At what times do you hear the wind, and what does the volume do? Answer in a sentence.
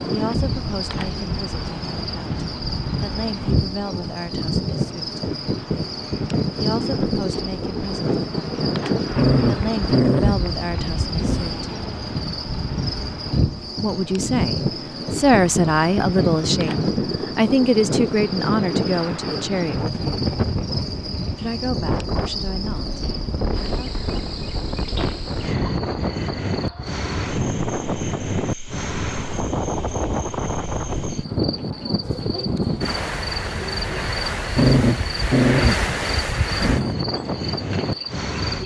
The wind can be heard from 0.0 to 38.6 s, at a steady volume.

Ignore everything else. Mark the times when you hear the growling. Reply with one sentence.
You can hear the growling from 9.1 to 11.6 s and from 34.5 to 37.0 s.